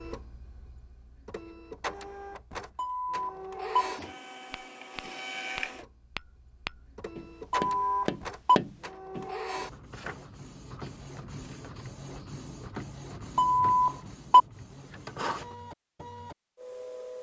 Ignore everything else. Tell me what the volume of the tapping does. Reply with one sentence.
The loudness of the tapping goes up.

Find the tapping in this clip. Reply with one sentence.
You can hear the tapping from 4.0 to 9.3 s.